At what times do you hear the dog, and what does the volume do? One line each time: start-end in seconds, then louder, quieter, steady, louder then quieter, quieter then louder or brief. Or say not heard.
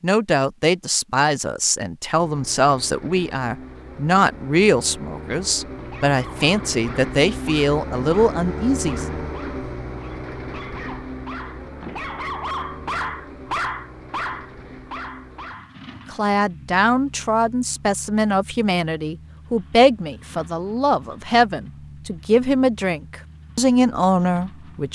5.7-15.9 louder.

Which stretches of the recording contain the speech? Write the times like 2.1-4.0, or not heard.
0.0-9.1, 16.1-24.9.